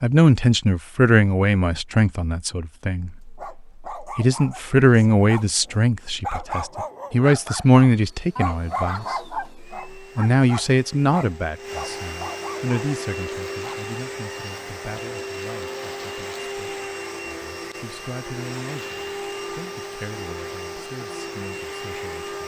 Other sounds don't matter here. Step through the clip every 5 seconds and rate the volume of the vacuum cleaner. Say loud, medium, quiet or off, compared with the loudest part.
off, quiet, loud, loud, loud.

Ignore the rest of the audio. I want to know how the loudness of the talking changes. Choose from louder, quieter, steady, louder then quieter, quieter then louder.
quieter.